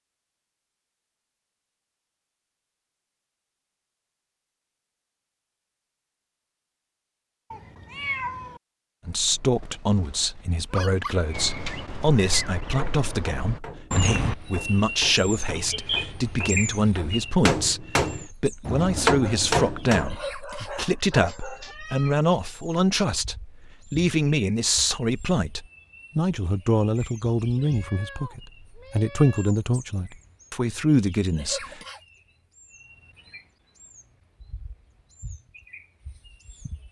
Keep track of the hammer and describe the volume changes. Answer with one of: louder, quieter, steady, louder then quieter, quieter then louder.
louder.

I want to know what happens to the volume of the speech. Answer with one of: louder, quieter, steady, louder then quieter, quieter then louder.
steady.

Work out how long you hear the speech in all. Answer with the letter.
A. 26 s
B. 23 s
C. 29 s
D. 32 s
B.